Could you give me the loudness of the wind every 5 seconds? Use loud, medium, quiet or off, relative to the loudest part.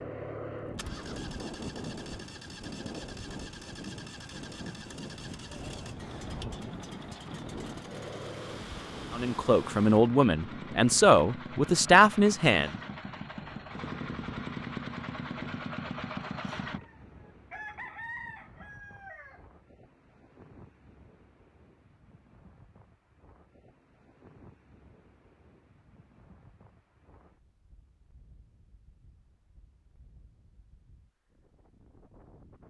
loud, loud, medium, quiet, quiet, quiet, quiet.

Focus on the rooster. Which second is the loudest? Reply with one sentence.
The loudest moment of the rooster is at 18 seconds.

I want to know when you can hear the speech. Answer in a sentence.
The speech can be heard from 9.1 to 12.8 s.